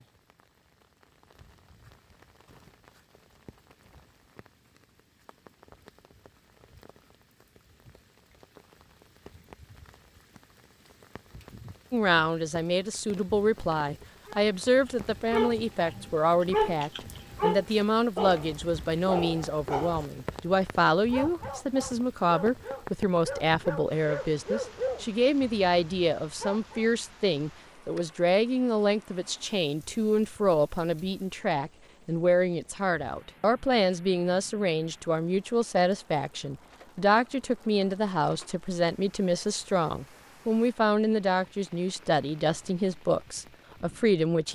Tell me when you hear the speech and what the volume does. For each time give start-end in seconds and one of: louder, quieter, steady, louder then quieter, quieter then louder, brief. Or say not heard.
11.9-44.4 steady.